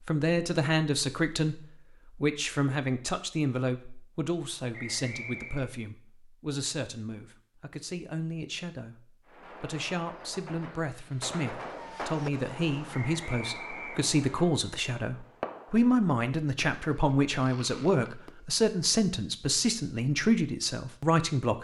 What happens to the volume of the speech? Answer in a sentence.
The volume of the speech goes down, then up.